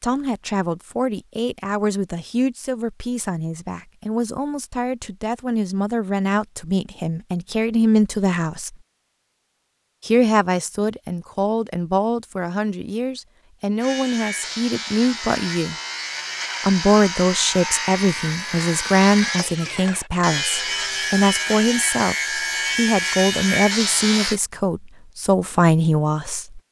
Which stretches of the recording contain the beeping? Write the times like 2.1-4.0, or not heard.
not heard.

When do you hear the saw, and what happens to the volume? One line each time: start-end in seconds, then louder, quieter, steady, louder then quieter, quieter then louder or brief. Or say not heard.
13.8-24.4 louder.